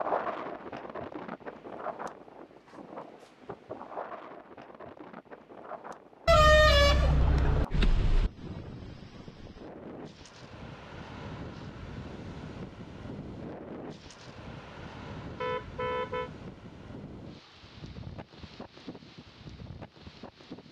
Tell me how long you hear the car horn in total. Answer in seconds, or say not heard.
3 s.